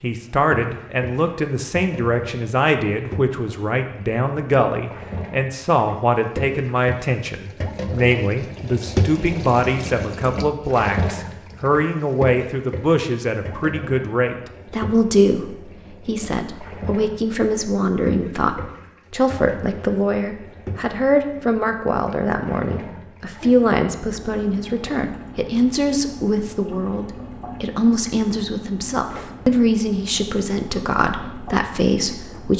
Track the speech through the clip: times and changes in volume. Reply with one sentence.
The speech can be heard from 0.0 to 32.5 s, at a steady volume.